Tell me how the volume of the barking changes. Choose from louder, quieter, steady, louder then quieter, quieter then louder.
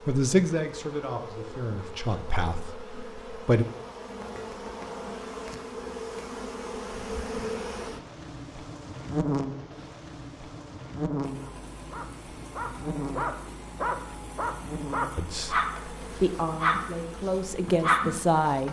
louder.